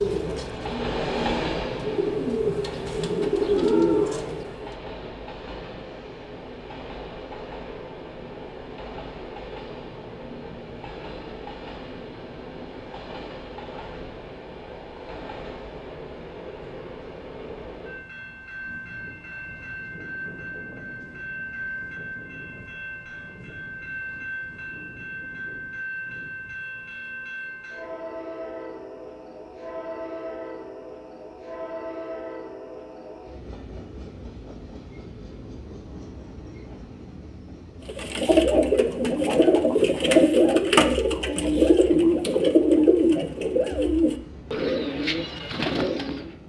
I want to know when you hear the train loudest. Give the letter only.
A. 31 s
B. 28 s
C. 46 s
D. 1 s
D.